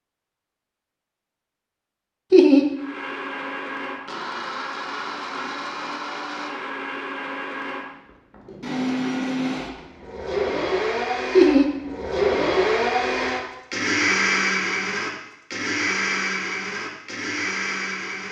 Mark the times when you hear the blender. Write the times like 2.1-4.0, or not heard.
2.8-18.2.